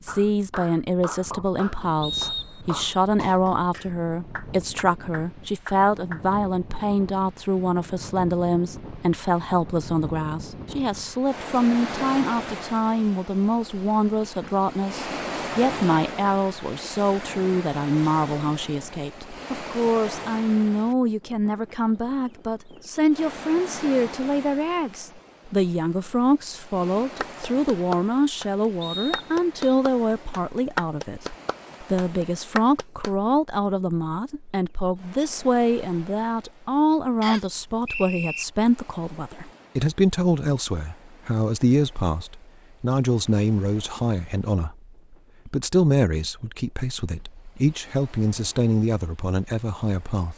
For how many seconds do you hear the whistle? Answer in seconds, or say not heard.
3 s.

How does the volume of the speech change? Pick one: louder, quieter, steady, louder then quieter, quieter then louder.
steady.